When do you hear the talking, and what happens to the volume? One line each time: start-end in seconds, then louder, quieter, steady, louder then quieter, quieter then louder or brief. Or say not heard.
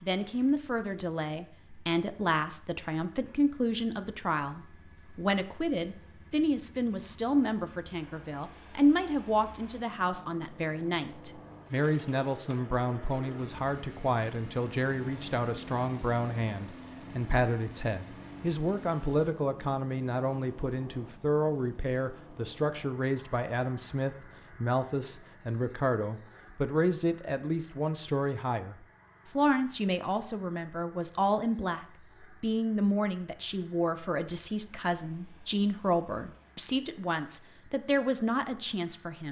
0.0-39.2 steady.